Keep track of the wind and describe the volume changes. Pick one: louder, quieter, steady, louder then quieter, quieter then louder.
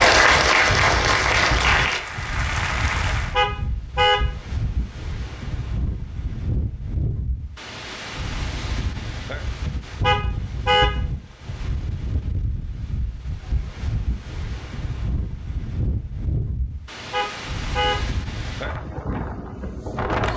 steady.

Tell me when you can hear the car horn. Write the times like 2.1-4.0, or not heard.
3.3-4.2, 10.0-10.9, 17.1-18.1.